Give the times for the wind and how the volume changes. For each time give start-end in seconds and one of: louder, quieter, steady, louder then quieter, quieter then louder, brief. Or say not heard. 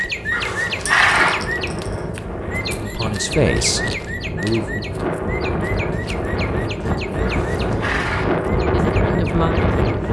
0.0-10.0 louder.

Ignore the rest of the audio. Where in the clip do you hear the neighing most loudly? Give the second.
1 s.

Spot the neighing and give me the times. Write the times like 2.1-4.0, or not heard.
0.3-1.4, 7.2-8.2.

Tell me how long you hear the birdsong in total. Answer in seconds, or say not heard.
10 s.